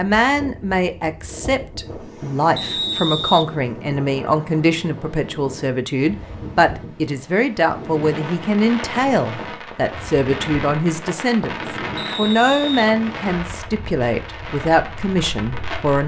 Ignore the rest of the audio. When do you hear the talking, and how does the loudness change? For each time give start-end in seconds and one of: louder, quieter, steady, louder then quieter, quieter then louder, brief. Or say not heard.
0.0-16.0 steady.